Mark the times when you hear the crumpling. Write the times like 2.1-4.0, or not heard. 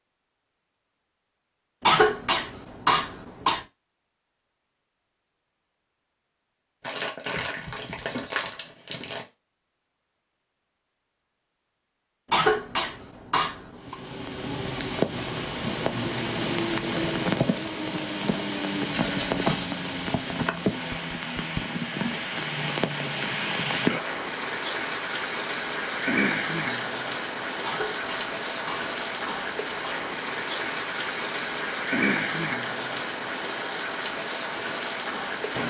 6.8-9.2, 18.9-19.7, 25.9-26.9.